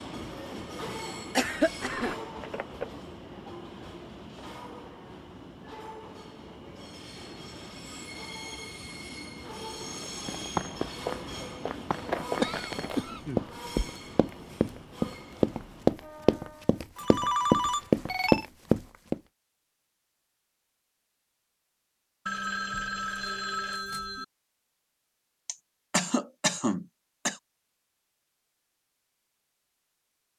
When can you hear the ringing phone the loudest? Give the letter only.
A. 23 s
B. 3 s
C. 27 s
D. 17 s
D.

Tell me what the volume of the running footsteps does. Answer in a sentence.
The loudness of the running footsteps goes up.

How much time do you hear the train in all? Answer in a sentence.
The train can be heard for 17 seconds in total.